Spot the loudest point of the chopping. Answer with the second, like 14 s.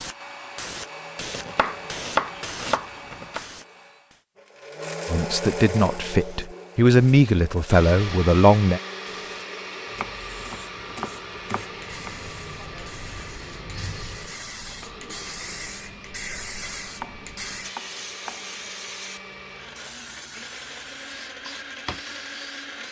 2 s.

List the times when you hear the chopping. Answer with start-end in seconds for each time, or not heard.
1.3-3.4, 9.9-12.1, 17.0-18.6.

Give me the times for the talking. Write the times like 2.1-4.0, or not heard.
5.0-8.8.